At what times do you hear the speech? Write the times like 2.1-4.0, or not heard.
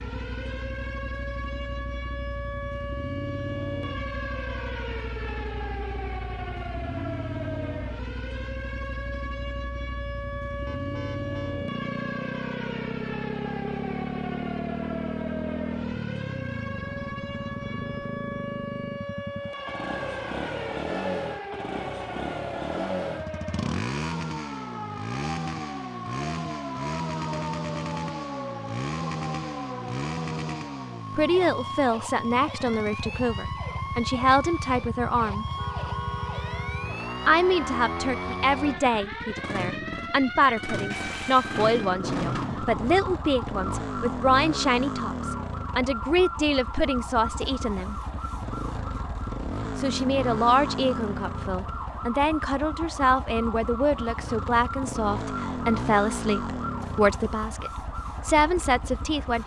31.1-35.5, 37.2-48.0, 49.8-59.4.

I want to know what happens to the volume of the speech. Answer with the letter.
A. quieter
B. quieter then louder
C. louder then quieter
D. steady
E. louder
D.